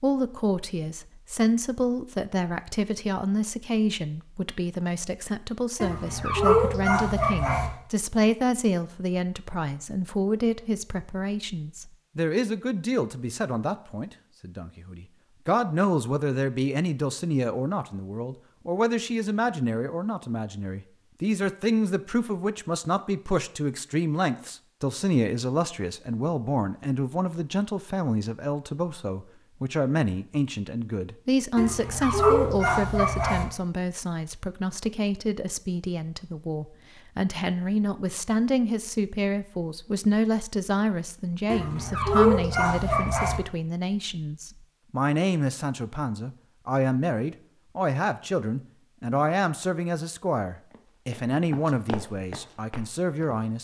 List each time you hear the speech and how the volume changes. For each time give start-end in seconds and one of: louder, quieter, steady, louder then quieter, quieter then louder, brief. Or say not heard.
0.0-53.5 steady.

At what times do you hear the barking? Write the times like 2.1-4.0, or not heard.
5.8-7.7, 31.6-33.5, 41.5-43.4.